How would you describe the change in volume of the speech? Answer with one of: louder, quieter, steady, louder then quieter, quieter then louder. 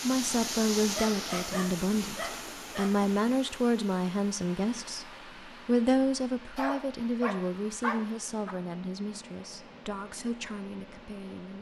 quieter.